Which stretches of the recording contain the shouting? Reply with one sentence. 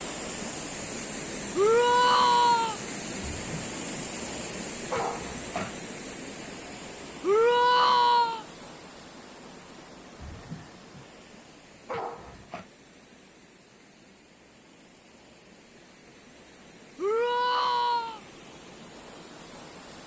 You can hear the shouting from 1.6 to 2.8 s, from 7.2 to 8.4 s and from 16.9 to 18.2 s.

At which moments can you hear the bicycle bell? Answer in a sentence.
You can't hear the bicycle bell here.